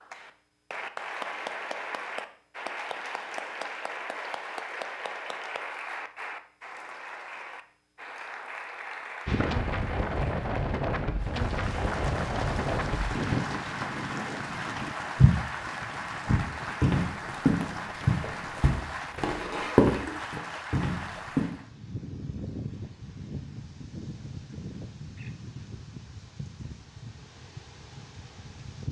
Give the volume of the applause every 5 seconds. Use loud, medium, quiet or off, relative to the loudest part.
loud, loud, loud, loud, loud, off.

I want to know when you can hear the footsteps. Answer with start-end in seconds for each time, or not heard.
15.2-21.5.